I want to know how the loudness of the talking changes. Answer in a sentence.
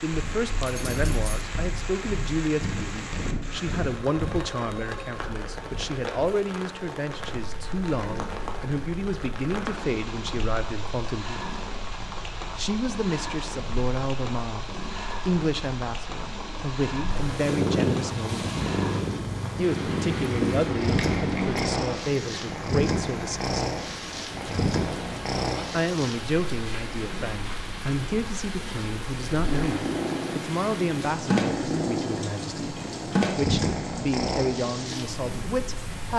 The volume of the talking stays about the same.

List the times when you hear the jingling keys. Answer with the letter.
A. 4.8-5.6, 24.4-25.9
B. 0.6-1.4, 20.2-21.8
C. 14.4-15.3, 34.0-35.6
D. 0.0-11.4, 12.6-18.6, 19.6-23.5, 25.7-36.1
B.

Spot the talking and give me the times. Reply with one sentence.
You can hear the talking from 0.0 to 11.4 s, from 12.6 to 18.6 s, from 19.6 to 23.5 s and from 25.7 to 36.1 s.